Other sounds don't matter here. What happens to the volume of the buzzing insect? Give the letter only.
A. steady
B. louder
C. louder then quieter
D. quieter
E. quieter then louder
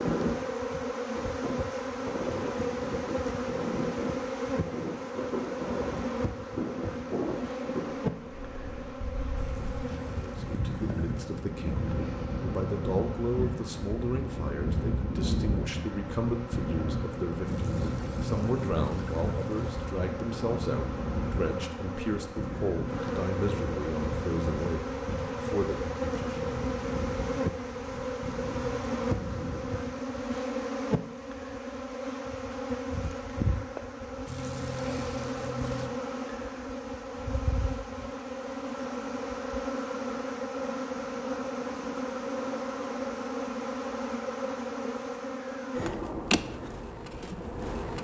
E.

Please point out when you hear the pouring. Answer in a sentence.
You can hear the pouring from 9.3 to 11.2 s, from 17.4 to 19.8 s and from 34.2 to 35.9 s.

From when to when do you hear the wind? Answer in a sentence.
You can hear the wind from 0.0 to 30.0 s.